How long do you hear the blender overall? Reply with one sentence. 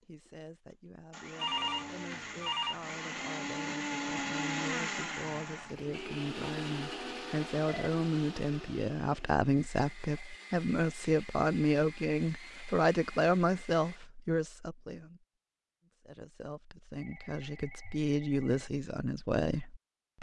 You can hear the blender for 14 seconds altogether.